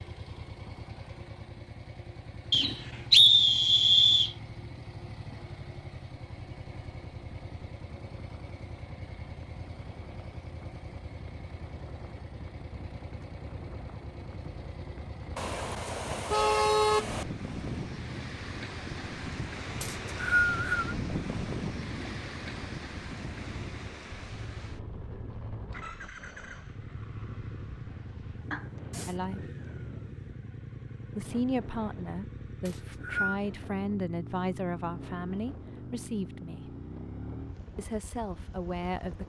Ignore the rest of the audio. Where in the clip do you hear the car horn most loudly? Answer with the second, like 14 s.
17 s.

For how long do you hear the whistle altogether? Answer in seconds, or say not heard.
4 s.